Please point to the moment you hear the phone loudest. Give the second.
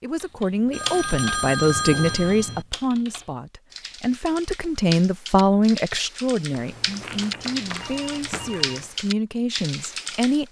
2 s.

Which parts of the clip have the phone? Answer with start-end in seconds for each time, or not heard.
0.7-2.6, 7.7-8.8.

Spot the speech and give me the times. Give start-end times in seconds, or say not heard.
0.0-10.4.